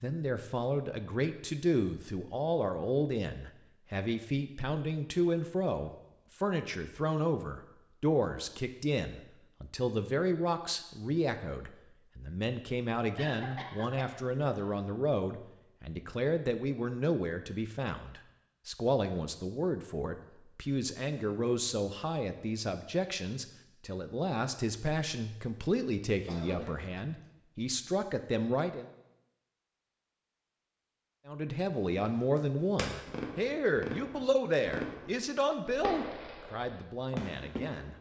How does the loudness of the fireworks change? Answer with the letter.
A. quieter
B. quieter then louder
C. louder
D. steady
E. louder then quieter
D.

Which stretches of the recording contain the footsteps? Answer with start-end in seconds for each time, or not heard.
not heard.